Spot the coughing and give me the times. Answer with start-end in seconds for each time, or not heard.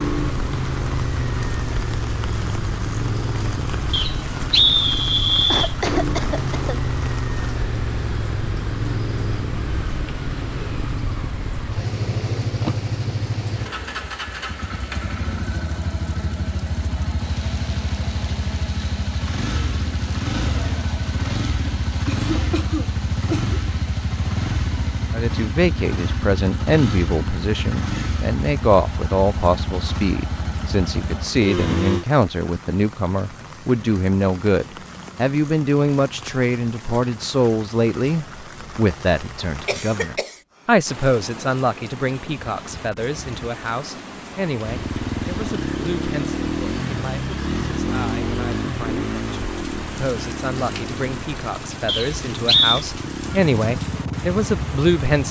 5.5-6.8, 22.3-23.6, 39.6-40.4.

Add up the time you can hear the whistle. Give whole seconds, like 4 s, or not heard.
3 s.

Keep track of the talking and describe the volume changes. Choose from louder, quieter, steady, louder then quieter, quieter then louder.
quieter then louder.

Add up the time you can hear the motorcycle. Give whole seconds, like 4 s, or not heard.
43 s.